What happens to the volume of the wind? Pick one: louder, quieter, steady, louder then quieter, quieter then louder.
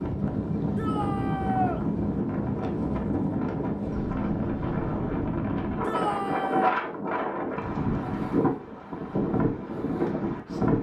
steady.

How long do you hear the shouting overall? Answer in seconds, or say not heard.
2 s.